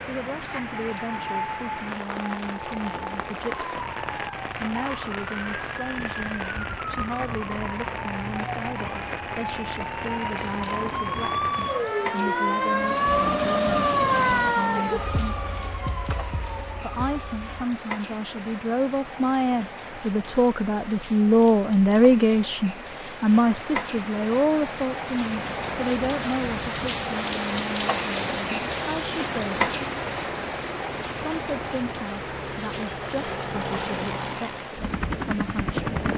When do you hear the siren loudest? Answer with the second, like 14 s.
14 s.